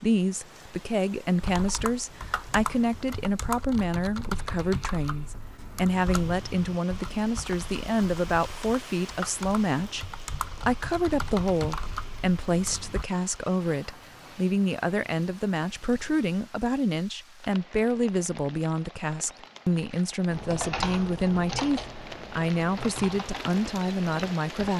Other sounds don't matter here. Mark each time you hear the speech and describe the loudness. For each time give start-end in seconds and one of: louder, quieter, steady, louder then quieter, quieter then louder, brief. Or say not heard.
0.0-24.7 steady.